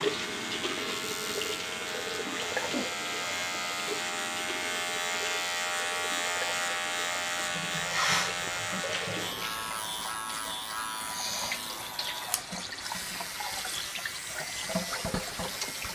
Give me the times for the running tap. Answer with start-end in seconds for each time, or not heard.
0.0-15.8.